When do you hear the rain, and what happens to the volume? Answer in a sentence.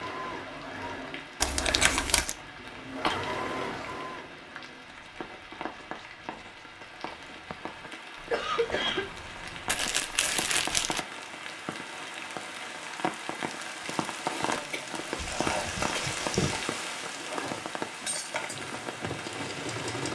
The rain can be heard from 0.0 to 20.1 s, getting louder.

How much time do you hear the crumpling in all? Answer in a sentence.
The crumpling can be heard for 4 seconds in total.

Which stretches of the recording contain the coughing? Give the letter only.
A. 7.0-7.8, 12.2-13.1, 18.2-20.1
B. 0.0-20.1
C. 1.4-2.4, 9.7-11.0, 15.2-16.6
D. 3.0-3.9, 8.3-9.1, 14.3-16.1
D.